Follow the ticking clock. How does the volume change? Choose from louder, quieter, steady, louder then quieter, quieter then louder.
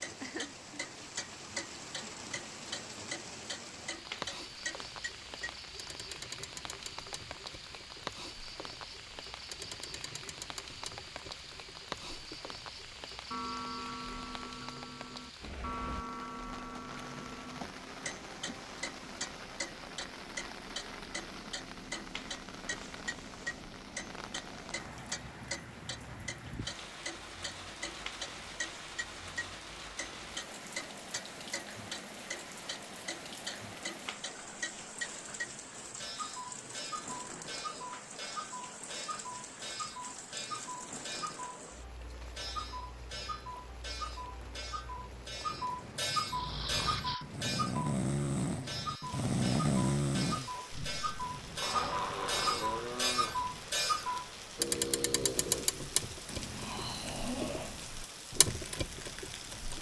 louder.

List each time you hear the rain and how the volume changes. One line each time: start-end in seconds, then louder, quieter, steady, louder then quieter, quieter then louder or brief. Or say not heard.
0.0-59.7 steady.